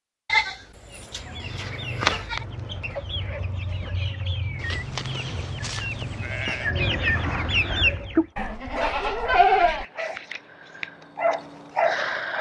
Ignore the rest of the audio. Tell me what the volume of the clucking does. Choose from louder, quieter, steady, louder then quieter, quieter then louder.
louder.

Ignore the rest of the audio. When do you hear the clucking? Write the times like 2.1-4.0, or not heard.
0.8-8.2.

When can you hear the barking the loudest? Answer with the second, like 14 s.
12 s.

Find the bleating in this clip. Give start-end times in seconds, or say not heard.
0.2-2.4, 4.6-6.7, 8.3-9.8.